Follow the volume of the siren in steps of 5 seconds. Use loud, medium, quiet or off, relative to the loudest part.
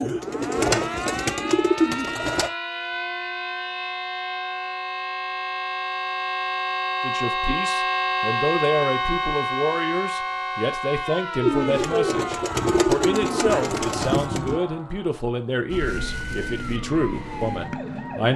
medium, loud, medium, medium.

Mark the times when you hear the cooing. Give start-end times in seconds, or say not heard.
0.0-2.5, 11.4-14.6.